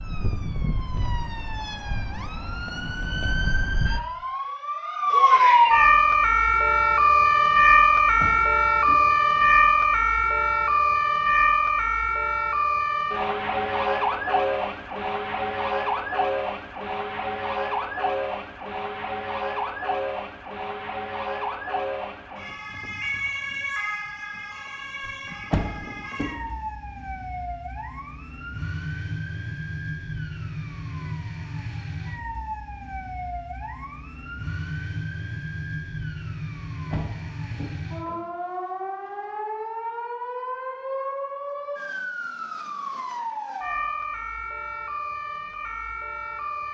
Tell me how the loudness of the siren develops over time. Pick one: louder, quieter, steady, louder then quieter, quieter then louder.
quieter.